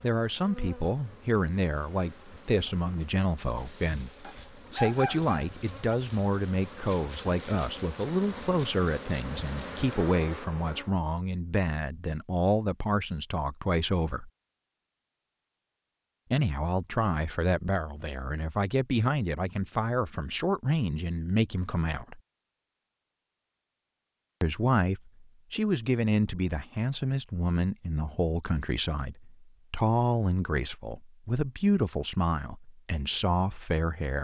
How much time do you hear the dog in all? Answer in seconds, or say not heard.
2 s.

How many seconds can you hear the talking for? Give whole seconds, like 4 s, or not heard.
30 s.